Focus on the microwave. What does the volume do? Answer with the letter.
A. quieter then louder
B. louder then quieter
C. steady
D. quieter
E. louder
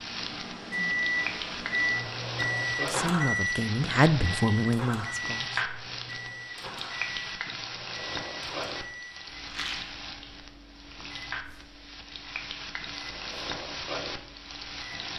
D.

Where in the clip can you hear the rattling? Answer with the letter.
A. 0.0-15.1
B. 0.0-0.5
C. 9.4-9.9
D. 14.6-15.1
C.